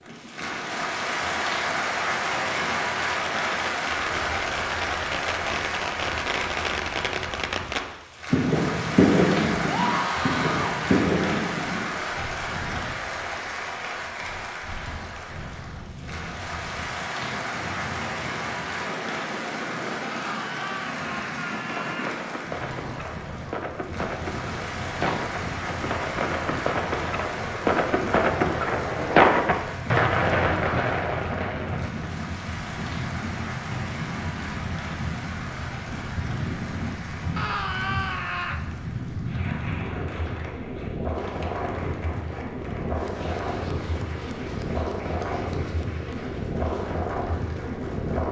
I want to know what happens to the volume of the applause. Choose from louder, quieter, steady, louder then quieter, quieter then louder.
quieter.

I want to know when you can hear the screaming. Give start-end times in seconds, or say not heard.
9.7-10.8, 20.1-22.1, 37.4-38.6.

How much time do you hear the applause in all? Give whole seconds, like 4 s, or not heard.
48 s.